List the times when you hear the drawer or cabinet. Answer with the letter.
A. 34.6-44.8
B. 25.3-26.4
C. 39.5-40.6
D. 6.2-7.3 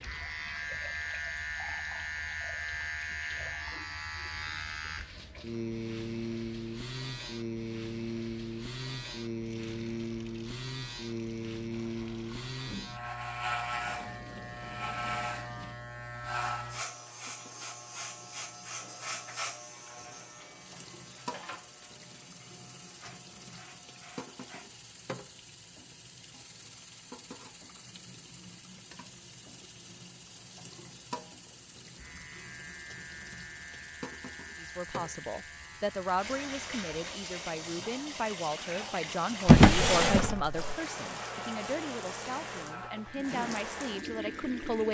C.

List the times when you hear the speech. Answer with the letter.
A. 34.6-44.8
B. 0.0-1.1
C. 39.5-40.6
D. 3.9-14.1
A.